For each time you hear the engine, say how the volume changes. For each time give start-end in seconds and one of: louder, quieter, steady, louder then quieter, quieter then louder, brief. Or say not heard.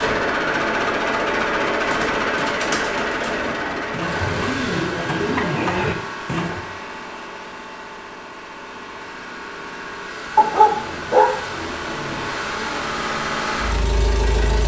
0.0-14.6 quieter then louder.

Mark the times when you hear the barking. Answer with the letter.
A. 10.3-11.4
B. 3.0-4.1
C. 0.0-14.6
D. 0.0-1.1
A.